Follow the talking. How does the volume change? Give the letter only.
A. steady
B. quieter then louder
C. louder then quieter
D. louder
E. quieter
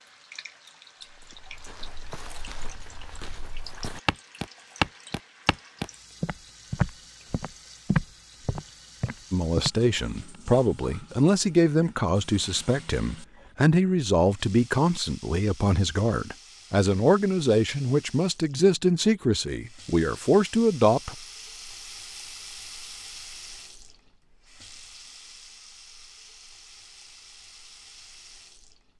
A.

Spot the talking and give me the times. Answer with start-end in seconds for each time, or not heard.
9.3-21.1.